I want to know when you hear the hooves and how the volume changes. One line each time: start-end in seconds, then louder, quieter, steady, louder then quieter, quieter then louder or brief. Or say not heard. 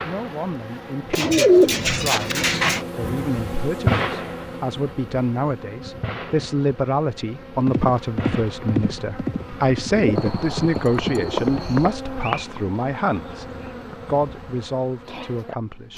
7.7-14.2 quieter.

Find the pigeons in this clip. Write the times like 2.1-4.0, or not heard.
1.1-2.8, 9.9-10.6, 11.2-11.8.